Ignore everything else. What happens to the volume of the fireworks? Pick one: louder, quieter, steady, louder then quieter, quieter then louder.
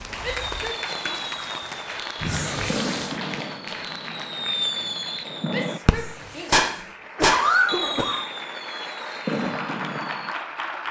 louder then quieter.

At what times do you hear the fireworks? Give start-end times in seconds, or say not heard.
0.2-10.3.